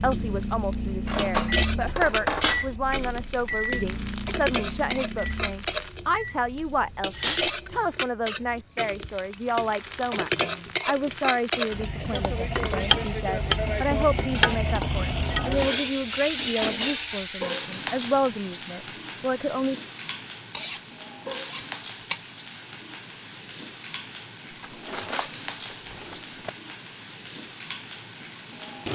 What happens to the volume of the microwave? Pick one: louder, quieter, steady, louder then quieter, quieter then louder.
quieter.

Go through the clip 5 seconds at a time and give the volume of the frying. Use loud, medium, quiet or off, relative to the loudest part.
medium, medium, loud, loud, medium, medium.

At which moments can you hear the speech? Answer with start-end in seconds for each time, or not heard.
0.0-19.8.